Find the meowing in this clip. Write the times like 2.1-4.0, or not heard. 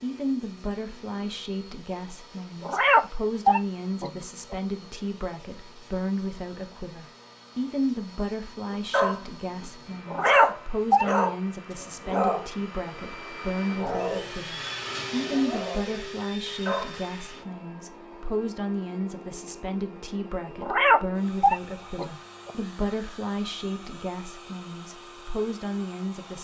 2.6-4.5, 10.1-11.1, 20.6-22.5.